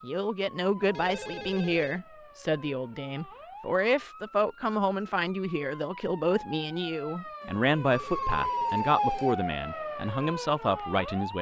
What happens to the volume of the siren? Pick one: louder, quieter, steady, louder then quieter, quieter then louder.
louder.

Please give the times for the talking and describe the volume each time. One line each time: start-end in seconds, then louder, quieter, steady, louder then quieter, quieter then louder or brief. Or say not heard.
0.0-11.3 steady.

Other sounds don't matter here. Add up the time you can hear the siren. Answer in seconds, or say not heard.
11 s.